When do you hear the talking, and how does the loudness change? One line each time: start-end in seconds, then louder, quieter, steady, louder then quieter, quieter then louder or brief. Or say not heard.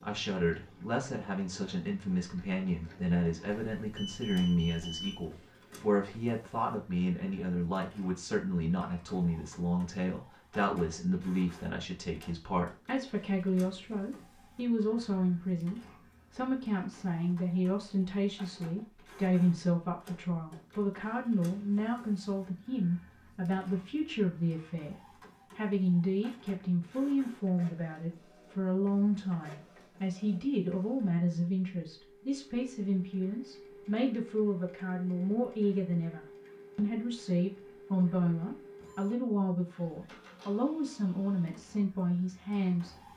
0.0-43.0 steady.